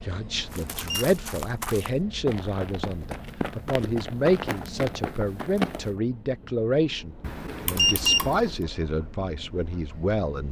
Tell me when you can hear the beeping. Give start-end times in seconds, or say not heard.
0.3-1.1, 7.2-8.5.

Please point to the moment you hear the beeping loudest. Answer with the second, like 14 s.
8 s.